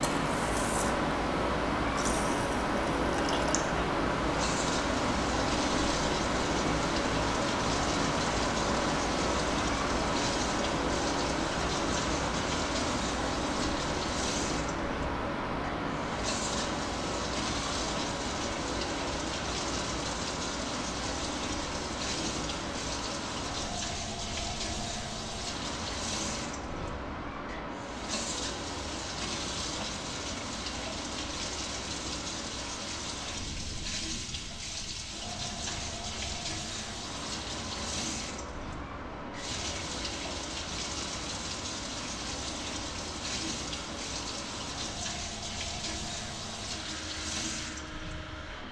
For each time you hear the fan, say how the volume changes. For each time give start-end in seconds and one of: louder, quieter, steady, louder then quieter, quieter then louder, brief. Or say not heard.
0.0-48.6 quieter.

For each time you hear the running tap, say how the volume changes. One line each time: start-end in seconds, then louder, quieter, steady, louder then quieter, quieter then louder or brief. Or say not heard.
0.0-48.6 steady.